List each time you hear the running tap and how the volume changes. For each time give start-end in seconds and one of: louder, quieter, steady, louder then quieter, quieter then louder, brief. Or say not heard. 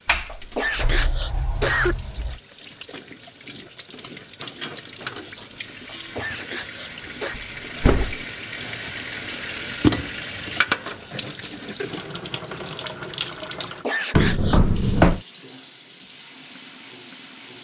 0.0-17.5 louder then quieter.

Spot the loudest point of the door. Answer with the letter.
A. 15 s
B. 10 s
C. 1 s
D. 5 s
A.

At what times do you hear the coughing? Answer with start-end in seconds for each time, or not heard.
0.2-1.9, 5.8-7.3, 13.8-14.6.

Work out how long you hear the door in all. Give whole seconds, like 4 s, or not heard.
4 s.